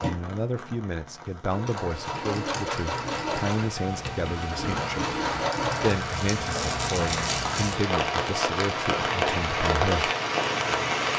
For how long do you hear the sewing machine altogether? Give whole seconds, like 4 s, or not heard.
6 s.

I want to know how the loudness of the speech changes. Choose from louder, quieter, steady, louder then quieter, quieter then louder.
steady.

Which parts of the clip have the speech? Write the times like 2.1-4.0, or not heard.
0.0-5.2, 5.8-10.1.